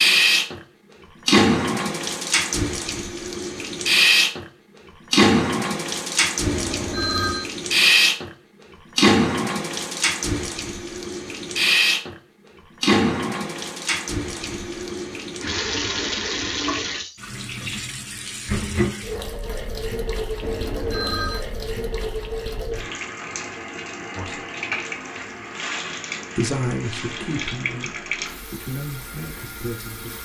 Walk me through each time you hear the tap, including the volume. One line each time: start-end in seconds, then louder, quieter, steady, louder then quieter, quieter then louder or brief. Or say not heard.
0.0-30.2 quieter.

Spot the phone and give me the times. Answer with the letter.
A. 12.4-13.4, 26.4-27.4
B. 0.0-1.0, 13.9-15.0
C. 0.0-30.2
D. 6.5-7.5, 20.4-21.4
D.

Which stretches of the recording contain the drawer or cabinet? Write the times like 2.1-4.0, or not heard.
not heard.